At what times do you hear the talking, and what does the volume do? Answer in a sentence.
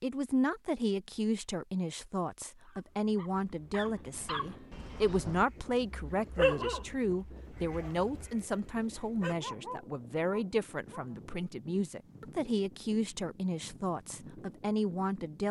The talking can be heard from 0.0 to 15.4 s, at a steady volume.